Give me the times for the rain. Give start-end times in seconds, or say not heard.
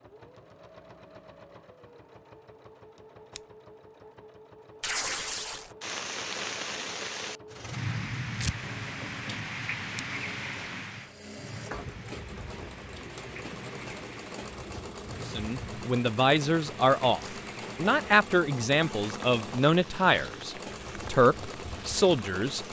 5.8-22.6.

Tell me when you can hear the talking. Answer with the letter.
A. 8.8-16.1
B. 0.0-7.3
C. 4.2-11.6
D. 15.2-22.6
D.